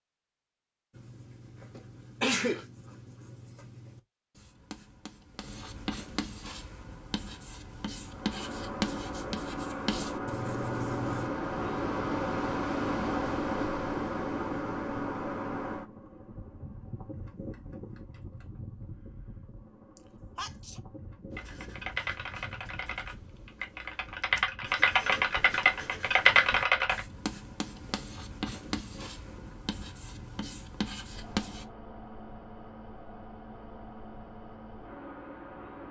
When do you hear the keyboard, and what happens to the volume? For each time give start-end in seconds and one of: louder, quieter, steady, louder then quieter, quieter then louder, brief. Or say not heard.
21.4-27.0 louder.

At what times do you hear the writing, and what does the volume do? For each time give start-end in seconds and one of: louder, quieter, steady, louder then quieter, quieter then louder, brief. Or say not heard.
0.9-11.3 louder
21.3-31.6 louder.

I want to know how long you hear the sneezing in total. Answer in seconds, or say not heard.
2 s.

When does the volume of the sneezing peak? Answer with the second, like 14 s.
2 s.